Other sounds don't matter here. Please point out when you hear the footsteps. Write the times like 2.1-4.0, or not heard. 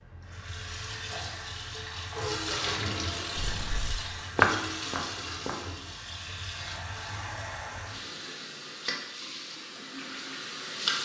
3.4-5.6.